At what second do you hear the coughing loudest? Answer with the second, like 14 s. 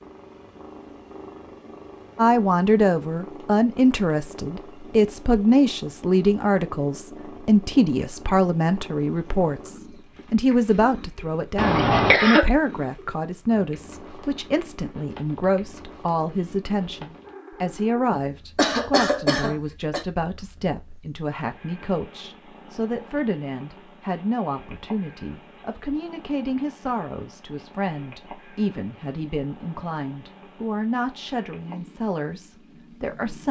12 s.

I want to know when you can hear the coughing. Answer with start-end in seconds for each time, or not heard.
11.6-12.4, 18.1-20.1.